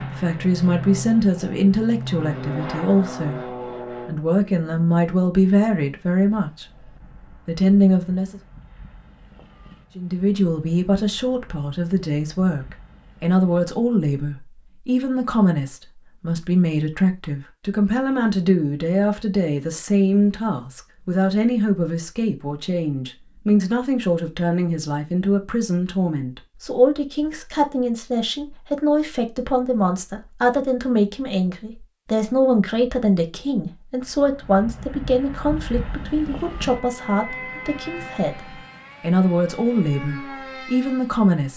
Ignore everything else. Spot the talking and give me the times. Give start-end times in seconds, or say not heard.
0.0-3.4, 4.0-6.7, 7.5-8.4, 9.9-41.5.